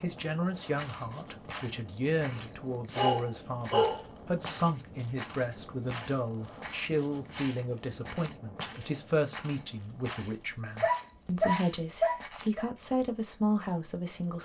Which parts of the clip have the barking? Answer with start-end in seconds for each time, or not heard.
3.0-4.5, 10.8-12.7.